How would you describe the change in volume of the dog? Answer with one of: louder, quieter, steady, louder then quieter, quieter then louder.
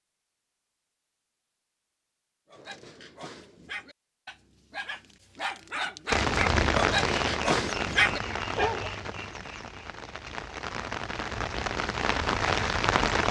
louder.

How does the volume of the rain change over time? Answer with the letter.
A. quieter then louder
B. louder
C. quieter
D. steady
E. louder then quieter
A.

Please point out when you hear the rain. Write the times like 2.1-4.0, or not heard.
6.1-13.2.